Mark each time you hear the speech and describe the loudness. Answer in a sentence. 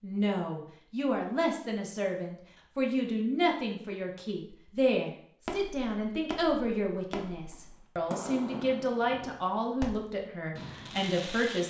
The speech can be heard from 0.0 to 11.6 s, at a steady volume.